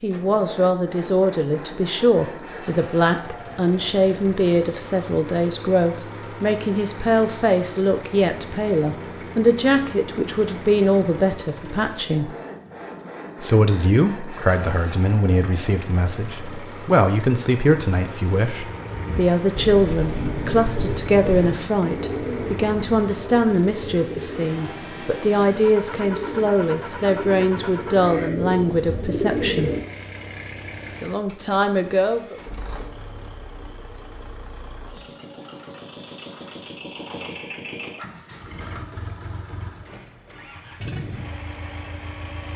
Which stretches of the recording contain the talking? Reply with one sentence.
You can hear the talking from 0.0 to 12.3 s, from 13.4 to 29.7 s and from 30.9 to 32.4 s.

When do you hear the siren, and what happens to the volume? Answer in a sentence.
The siren can't be heard in this clip.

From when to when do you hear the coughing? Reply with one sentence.
The coughing can't be heard in this clip.